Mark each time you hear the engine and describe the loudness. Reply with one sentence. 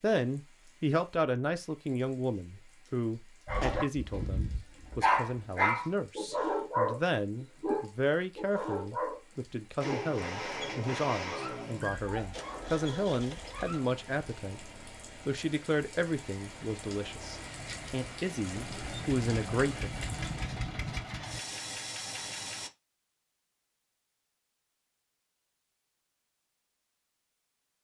You can hear the engine from 9.8 to 22.7 s, getting quieter then louder.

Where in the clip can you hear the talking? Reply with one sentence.
You can hear the talking from 0.0 to 19.9 s.